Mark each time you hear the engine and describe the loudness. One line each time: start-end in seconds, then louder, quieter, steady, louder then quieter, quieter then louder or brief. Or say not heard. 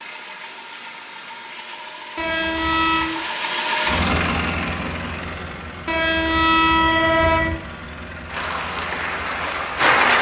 0.0-9.9 louder then quieter.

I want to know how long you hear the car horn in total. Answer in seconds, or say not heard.
3 s.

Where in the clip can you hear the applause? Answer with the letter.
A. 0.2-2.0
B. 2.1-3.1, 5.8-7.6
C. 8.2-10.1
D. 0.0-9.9
C.